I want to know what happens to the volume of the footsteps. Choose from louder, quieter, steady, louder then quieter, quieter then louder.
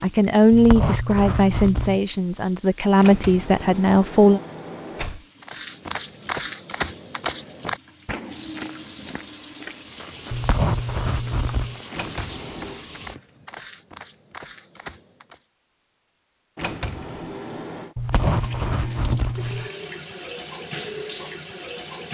quieter.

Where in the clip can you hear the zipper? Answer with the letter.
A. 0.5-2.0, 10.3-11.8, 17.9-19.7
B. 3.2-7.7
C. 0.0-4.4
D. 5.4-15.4
A.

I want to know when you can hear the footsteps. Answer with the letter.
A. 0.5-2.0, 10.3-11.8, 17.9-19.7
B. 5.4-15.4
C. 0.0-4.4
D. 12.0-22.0
B.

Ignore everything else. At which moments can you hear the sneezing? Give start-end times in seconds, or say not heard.
not heard.